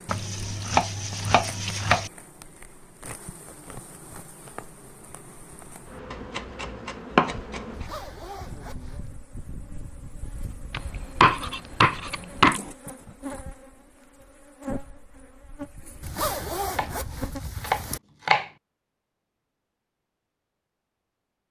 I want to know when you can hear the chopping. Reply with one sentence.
You can hear the chopping from 0.1 to 2.1 s, from 6.1 to 7.8 s, from 10.7 to 12.6 s and from 16.7 to 18.4 s.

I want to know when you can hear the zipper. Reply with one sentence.
You can hear the zipper from 7.7 to 9.1 s and from 16.0 to 18.0 s.